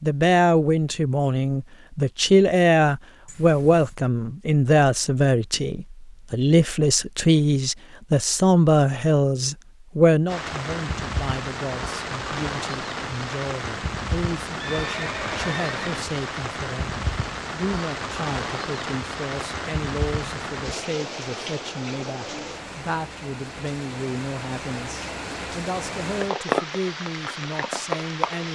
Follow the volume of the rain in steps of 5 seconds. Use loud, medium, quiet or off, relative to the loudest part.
off, off, loud, loud, medium, loud.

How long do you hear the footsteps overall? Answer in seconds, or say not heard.
not heard.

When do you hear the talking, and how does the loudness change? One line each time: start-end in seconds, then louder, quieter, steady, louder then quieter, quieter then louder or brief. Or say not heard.
0.0-28.5 quieter.